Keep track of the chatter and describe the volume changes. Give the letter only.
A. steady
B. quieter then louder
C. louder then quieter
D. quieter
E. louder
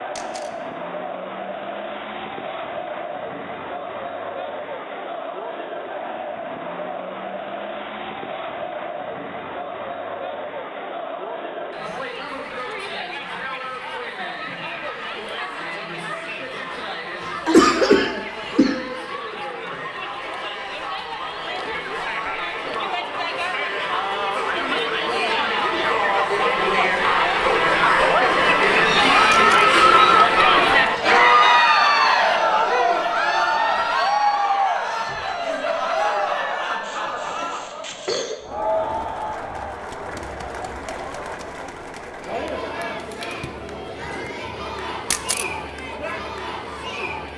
C.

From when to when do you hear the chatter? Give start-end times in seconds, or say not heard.
0.0-47.3.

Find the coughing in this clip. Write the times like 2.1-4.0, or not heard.
17.2-18.9, 36.8-38.4.